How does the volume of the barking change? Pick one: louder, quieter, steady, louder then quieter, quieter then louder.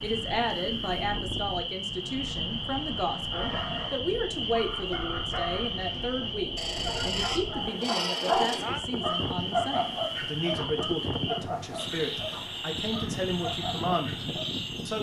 louder then quieter.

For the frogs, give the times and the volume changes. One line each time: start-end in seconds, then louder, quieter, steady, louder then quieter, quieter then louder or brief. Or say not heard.
0.0-14.9 steady.